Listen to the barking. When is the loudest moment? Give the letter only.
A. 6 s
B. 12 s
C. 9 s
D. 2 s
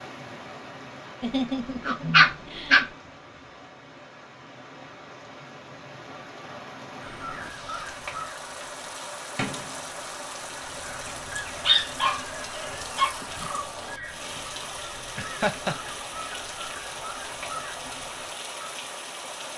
D.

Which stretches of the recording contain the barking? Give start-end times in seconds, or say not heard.
1.2-2.9, 11.3-13.2.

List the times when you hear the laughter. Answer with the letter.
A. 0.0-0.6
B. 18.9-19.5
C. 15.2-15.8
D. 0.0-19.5
C.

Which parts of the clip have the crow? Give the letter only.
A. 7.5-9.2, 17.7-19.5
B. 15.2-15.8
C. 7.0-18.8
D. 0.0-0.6
C.